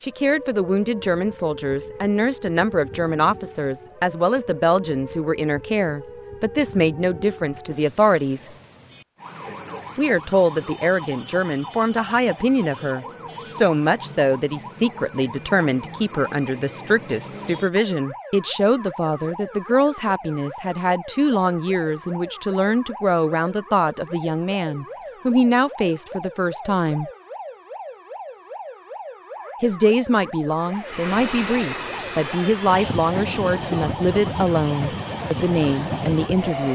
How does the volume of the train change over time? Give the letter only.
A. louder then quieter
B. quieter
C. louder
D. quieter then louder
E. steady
E.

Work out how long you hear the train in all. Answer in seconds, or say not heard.
6 s.